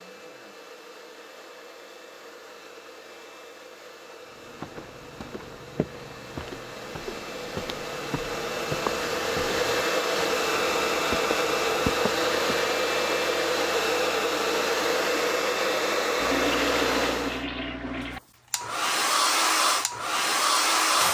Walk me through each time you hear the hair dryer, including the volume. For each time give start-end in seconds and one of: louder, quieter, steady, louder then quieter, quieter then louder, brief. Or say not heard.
0.0-21.0 louder.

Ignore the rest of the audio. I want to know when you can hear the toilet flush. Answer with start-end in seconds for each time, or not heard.
16.1-18.2.